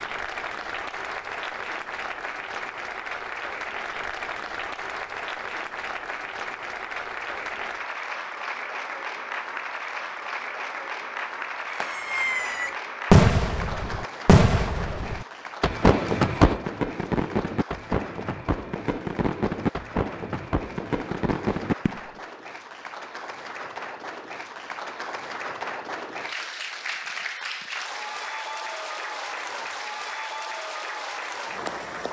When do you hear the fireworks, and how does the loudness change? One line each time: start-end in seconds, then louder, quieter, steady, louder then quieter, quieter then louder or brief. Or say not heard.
11.8-22.1 quieter.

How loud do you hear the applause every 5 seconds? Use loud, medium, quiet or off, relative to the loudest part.
loud, loud, loud, medium, medium, loud, loud.